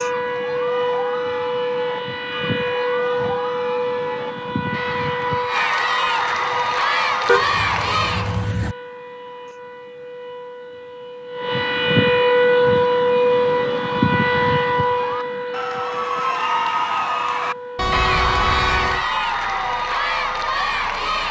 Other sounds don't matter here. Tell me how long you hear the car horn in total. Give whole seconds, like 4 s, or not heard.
3 s.